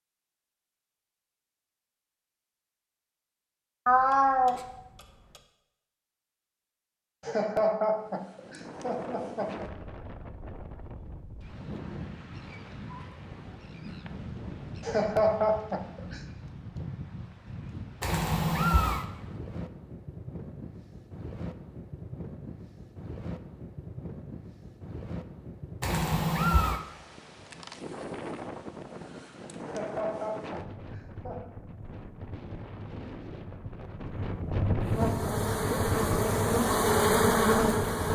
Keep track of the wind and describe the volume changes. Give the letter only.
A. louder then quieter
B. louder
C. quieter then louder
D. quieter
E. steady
B.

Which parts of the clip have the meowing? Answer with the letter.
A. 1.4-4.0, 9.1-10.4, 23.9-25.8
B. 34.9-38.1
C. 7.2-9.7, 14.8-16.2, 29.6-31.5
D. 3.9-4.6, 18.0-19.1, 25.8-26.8
D.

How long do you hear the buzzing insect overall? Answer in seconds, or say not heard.
3 s.